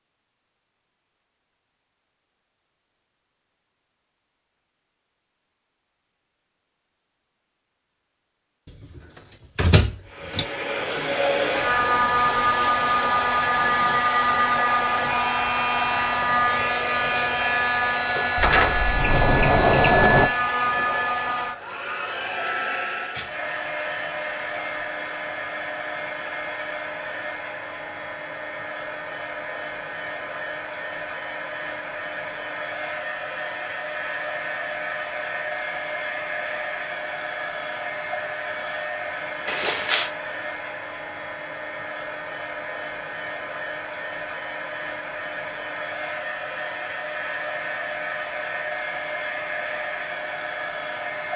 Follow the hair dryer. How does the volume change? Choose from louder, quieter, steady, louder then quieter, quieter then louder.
quieter.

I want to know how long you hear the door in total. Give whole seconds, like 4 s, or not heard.
4 s.